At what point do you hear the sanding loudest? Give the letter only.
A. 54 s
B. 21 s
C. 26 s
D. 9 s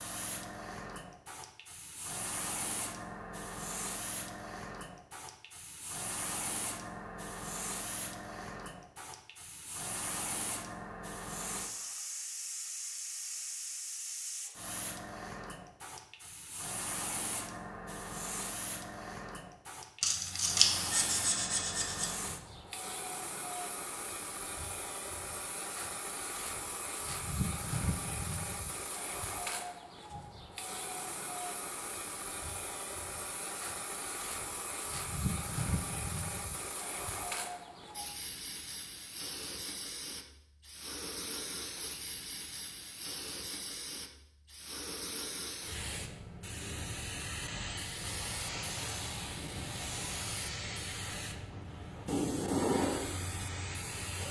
B.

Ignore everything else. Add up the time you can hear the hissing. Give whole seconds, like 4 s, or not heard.
54 s.